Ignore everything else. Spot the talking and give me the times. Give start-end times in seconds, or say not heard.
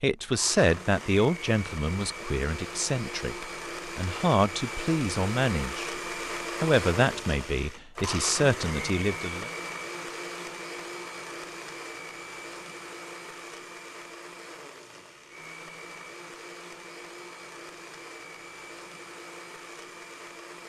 0.0-5.9, 6.6-9.5.